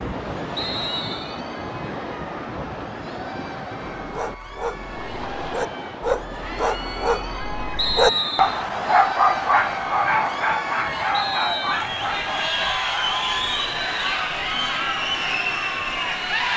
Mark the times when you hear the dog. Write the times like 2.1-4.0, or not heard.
4.0-13.3.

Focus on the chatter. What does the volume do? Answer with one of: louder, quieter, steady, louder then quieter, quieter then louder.
louder.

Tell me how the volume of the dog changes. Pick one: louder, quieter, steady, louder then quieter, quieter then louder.
louder then quieter.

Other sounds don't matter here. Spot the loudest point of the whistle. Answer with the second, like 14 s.
8 s.